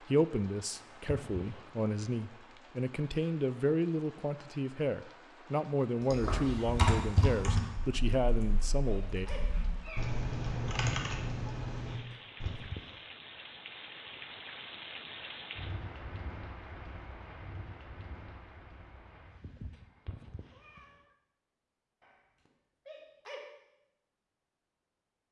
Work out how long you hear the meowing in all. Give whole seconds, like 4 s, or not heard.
3 s.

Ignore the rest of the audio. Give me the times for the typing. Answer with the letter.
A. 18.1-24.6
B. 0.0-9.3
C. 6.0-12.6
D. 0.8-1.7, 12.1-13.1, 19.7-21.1
C.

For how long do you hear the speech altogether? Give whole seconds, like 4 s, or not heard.
9 s.